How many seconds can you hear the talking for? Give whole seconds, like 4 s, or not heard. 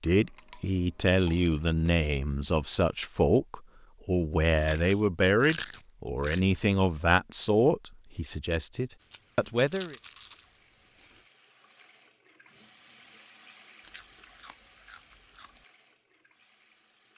10 s.